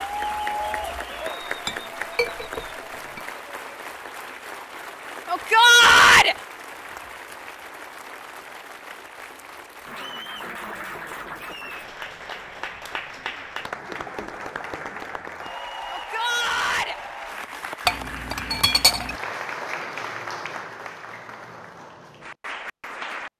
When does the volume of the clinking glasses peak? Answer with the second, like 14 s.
19 s.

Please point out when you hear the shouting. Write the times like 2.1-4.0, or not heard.
5.2-6.3, 15.9-16.9.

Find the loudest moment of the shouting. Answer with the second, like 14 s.
6 s.